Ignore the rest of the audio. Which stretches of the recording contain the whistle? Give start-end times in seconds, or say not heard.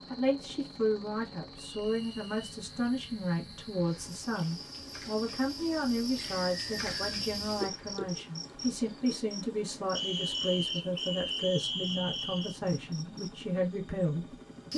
1.6-2.5, 6.2-7.2, 9.9-12.6.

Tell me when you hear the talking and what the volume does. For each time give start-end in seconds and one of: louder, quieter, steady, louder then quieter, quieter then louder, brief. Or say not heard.
0.1-14.7 steady.